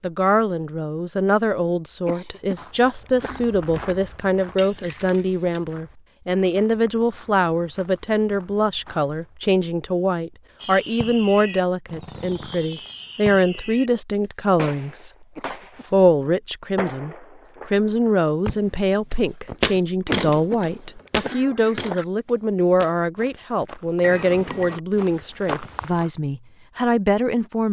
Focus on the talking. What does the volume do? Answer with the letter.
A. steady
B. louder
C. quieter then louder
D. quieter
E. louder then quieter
A.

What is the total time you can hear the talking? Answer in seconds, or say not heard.
27 s.